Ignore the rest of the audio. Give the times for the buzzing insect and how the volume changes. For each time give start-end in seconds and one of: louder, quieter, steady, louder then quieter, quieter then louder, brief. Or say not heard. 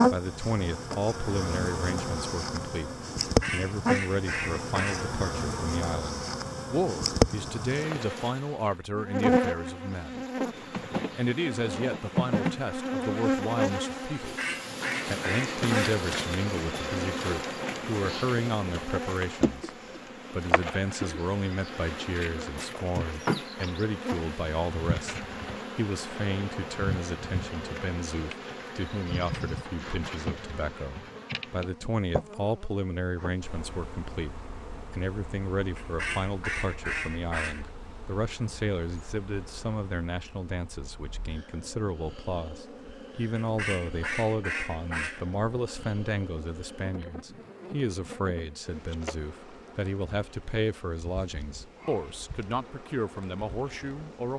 0.0-54.3 quieter.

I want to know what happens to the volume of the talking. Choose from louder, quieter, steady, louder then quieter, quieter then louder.
steady.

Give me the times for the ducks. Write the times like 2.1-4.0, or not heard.
3.1-5.2, 14.2-16.0, 35.8-37.7, 43.4-45.3.